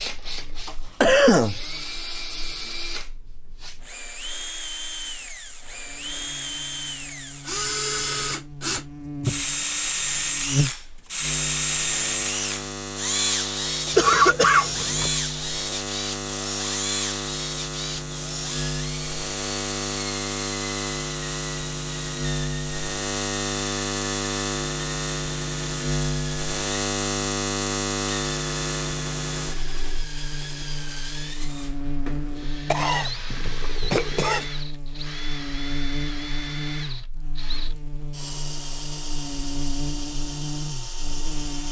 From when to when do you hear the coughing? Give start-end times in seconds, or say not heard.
0.7-1.6, 13.9-15.1, 32.7-34.5.